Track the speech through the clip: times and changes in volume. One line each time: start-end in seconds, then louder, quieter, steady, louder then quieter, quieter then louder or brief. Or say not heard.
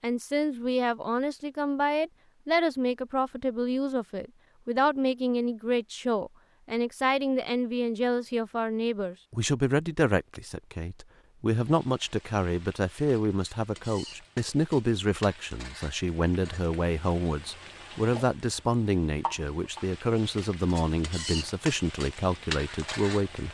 0.0-23.4 steady.